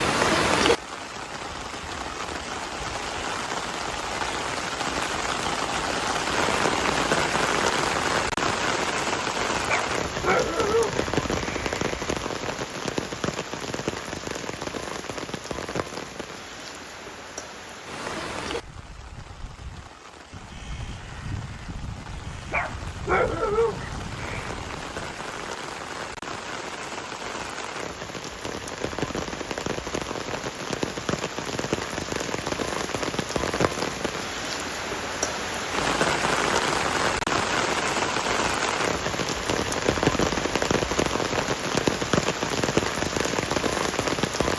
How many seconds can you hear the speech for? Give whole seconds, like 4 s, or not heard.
not heard.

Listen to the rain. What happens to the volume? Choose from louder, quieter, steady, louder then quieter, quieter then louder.
quieter then louder.